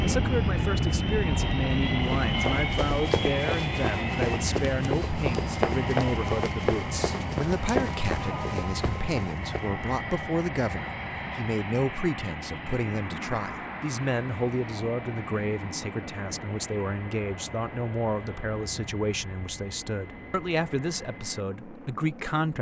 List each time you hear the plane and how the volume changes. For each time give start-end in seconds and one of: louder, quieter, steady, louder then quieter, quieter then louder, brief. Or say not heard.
0.0-22.5 quieter.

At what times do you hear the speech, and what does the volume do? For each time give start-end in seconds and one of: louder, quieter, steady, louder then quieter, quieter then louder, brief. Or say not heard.
0.0-22.5 steady.